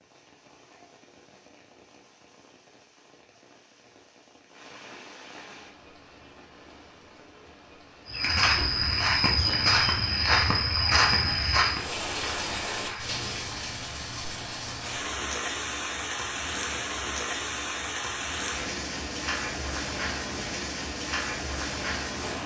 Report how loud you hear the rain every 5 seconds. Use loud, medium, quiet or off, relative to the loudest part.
quiet, quiet, loud, loud, loud.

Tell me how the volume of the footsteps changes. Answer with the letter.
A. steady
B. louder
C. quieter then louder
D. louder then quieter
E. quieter
E.